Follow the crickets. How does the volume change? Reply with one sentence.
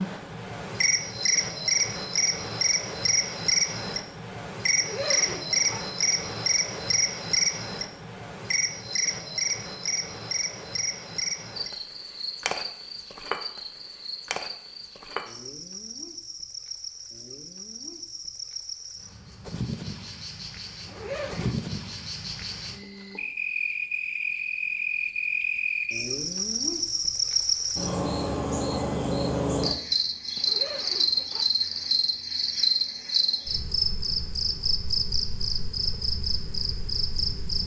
The volume of the crickets goes down, then up.